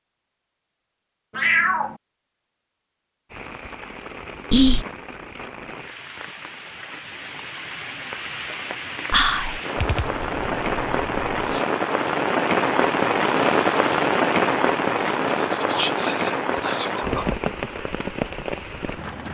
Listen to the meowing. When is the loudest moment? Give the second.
2 s.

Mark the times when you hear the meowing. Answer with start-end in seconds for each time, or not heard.
1.4-2.0, 9.8-11.6.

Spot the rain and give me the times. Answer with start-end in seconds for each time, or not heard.
3.3-19.2.